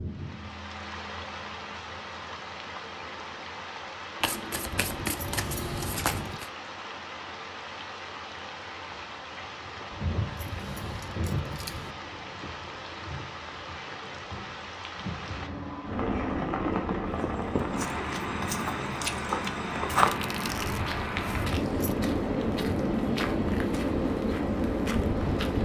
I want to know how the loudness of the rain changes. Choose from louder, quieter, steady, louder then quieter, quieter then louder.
louder.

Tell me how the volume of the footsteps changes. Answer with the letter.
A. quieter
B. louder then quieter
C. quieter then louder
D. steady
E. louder
B.